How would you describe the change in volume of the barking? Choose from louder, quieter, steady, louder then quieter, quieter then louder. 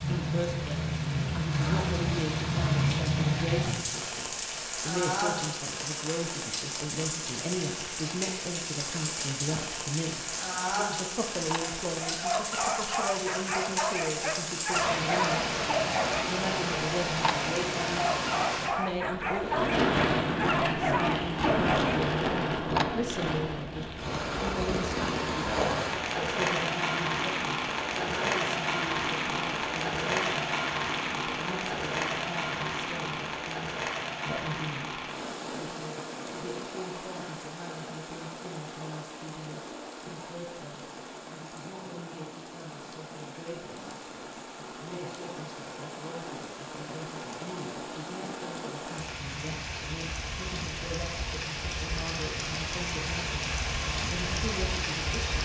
steady.